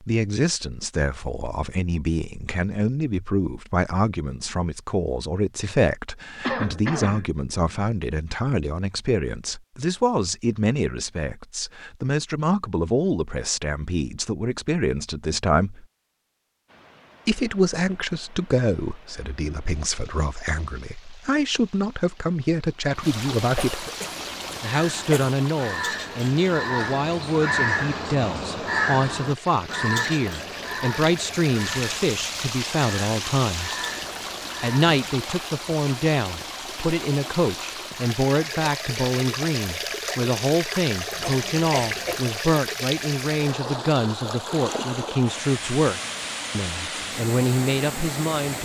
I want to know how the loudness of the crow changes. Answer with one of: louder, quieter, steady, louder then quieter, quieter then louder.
louder then quieter.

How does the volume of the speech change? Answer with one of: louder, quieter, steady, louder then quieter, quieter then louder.
steady.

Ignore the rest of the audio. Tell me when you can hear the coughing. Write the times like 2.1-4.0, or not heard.
6.4-7.3, 23.4-25.4, 41.1-42.2.